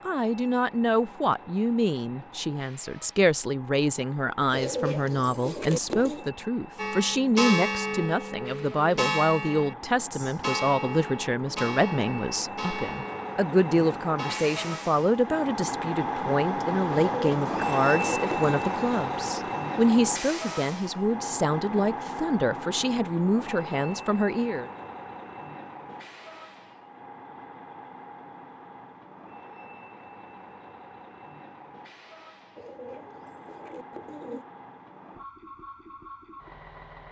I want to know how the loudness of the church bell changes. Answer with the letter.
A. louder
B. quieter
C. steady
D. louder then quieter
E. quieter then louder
B.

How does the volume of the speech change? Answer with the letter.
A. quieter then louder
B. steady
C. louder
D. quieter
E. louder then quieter
B.